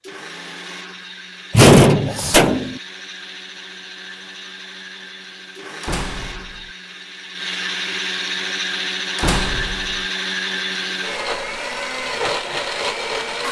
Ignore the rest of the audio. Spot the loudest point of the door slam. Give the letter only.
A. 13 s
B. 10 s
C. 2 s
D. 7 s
C.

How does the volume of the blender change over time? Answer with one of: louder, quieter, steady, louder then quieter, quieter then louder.
louder.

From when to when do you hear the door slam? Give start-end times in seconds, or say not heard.
1.5-2.8, 5.8-6.6, 9.2-9.9.